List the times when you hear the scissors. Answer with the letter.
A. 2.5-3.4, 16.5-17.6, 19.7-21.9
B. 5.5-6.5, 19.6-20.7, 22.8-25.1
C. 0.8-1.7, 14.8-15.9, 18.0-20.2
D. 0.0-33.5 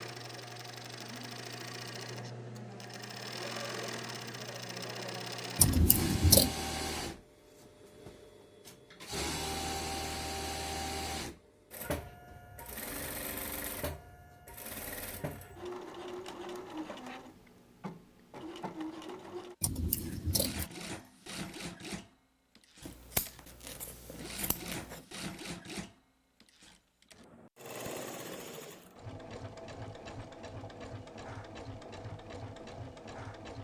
B.